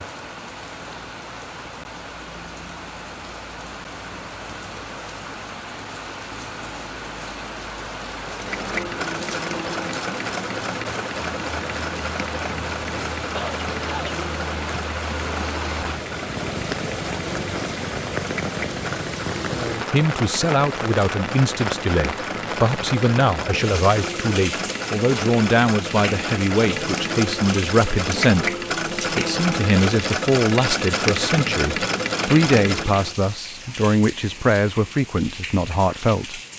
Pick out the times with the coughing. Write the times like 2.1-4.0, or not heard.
13.3-14.2.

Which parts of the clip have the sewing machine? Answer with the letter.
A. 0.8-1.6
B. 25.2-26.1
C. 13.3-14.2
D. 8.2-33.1
D.